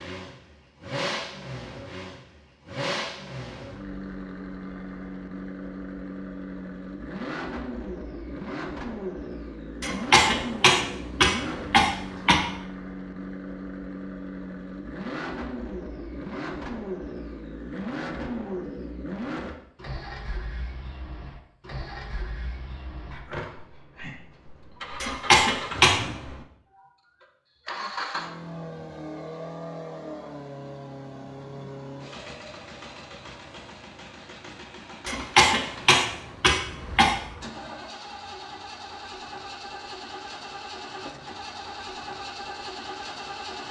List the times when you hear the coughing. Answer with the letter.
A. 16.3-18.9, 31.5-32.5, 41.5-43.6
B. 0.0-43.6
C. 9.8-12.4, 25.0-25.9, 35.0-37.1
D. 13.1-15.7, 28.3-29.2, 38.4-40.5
C.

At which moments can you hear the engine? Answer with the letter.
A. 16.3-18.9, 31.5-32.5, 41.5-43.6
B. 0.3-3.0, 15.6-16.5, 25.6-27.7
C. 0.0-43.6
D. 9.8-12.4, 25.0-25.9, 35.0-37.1
C.